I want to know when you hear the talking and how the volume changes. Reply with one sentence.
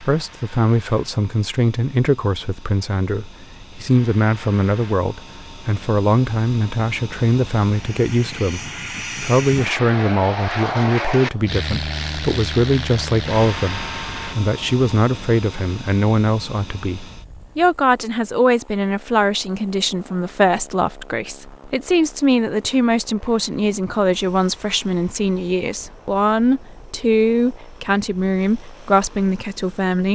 You can hear the talking from 0.0 to 30.1 s, at a steady volume.